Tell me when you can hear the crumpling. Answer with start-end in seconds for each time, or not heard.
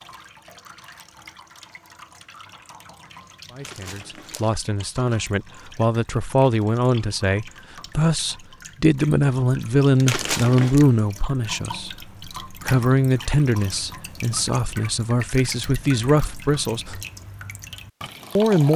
3.6-4.5, 10.1-10.8.